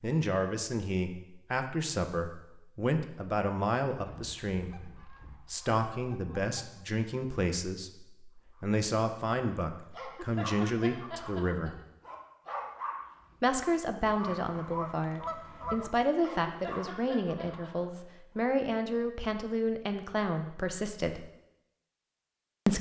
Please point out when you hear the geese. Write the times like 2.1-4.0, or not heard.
4.0-6.8, 14.2-15.9.